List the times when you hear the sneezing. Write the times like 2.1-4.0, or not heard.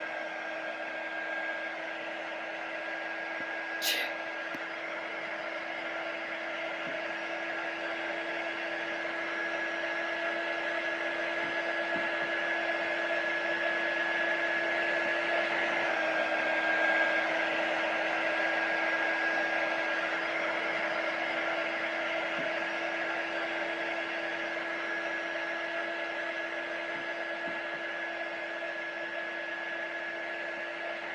3.4-4.6.